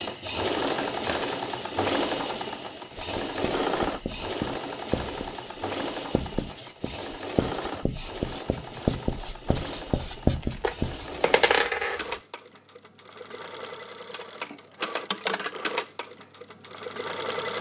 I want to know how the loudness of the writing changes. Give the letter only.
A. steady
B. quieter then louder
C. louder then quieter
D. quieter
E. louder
E.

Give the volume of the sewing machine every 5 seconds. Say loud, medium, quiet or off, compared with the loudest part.
loud, medium, medium, loud.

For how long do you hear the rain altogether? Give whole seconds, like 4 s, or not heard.
not heard.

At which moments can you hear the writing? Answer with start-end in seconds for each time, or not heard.
2.9-11.2.